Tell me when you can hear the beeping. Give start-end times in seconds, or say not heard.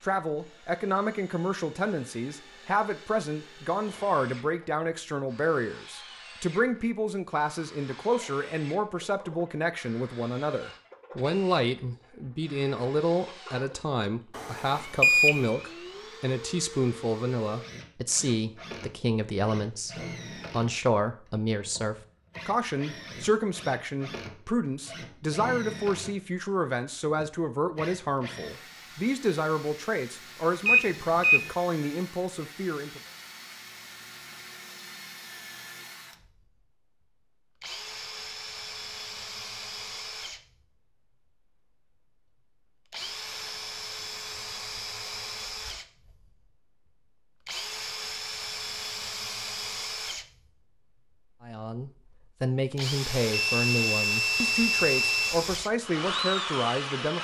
14.3-15.4, 30.6-31.4, 53.3-55.4.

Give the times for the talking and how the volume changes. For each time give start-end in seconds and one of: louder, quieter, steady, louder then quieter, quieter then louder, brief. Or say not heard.
0.0-33.0 steady
51.4-57.1 steady.